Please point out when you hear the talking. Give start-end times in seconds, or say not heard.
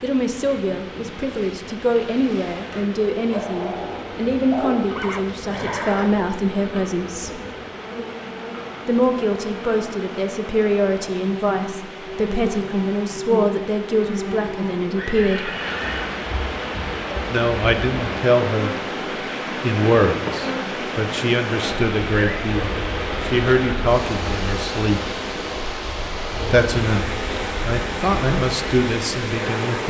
0.0-7.4, 8.8-15.5, 17.2-18.8, 19.6-25.0, 26.4-29.8.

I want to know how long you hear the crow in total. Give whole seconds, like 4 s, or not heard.
not heard.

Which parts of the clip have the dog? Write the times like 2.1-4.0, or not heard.
3.3-4.8.